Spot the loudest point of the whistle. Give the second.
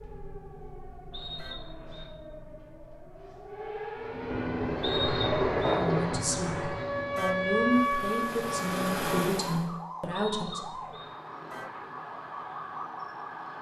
5 s.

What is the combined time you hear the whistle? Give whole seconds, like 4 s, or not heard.
3 s.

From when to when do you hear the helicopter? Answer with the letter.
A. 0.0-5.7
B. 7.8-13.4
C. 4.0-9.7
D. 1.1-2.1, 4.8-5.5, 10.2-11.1
C.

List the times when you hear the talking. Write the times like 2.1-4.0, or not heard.
5.8-10.7.